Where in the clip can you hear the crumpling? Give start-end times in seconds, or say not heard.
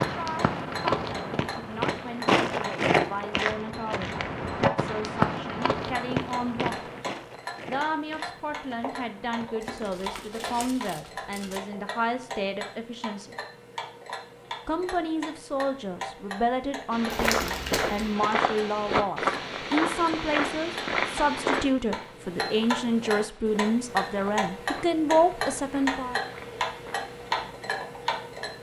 9.7-11.6, 17.1-18.1.